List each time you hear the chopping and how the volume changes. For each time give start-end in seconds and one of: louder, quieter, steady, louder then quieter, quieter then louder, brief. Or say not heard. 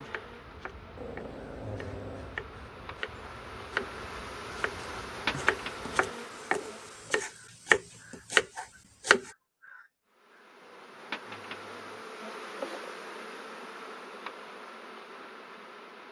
0.0-9.3 louder.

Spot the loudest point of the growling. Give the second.
2 s.